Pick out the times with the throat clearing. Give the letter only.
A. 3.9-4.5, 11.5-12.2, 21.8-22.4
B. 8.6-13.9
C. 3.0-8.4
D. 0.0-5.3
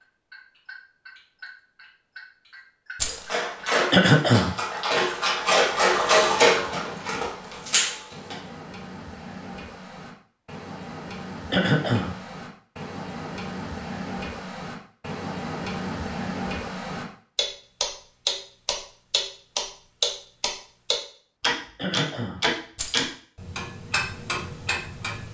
A.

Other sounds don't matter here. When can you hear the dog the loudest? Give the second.
6 s.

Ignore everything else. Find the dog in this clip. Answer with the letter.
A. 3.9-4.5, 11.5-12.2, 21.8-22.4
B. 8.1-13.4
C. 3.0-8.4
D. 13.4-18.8
C.